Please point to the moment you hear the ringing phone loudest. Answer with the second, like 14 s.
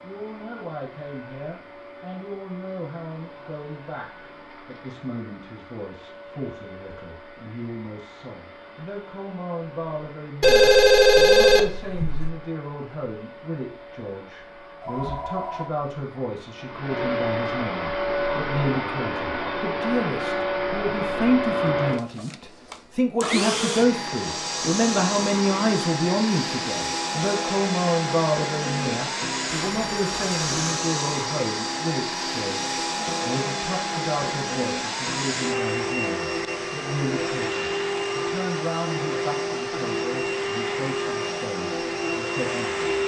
11 s.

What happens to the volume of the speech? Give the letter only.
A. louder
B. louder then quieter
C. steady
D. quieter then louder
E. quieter
B.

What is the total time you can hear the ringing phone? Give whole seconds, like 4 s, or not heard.
4 s.